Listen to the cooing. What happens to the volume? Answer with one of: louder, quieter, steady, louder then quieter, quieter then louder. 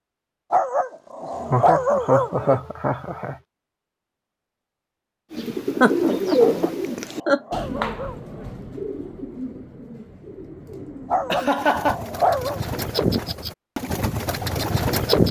quieter then louder.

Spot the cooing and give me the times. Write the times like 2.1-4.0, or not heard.
5.3-15.2.